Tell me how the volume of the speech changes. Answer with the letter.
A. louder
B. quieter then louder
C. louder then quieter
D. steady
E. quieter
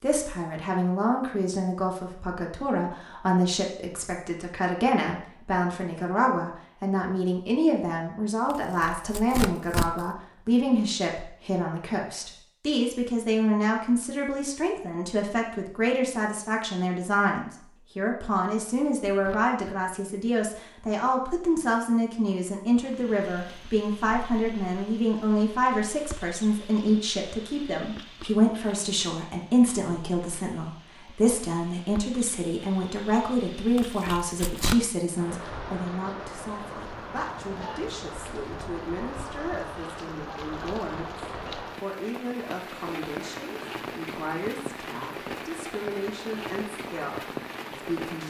E.